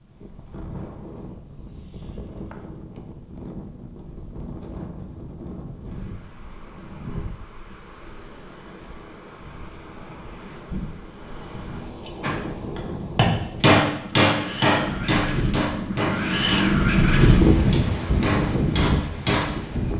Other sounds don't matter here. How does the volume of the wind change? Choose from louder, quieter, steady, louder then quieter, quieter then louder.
louder.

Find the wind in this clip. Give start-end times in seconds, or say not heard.
0.0-19.9.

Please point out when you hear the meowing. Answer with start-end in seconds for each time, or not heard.
not heard.